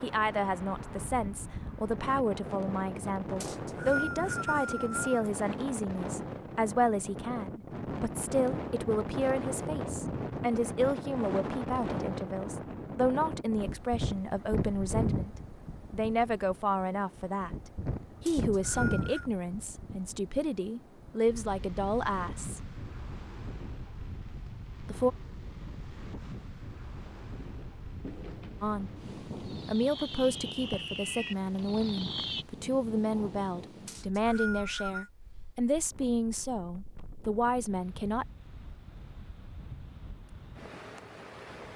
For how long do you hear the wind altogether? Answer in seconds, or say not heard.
42 s.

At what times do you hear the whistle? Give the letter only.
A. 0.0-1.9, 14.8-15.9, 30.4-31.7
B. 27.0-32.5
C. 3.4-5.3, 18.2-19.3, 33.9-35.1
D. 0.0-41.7
C.